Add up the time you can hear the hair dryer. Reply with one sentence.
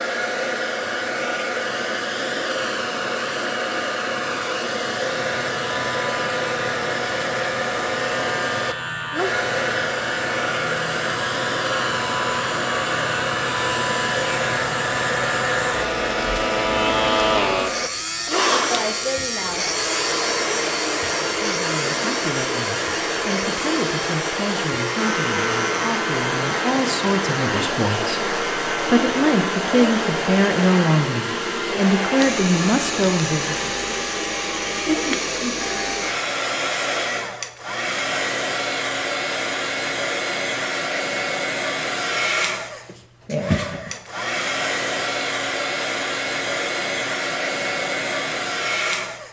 The hair dryer can be heard for 49 seconds in total.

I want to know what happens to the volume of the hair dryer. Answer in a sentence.
The volume of the hair dryer stays about the same.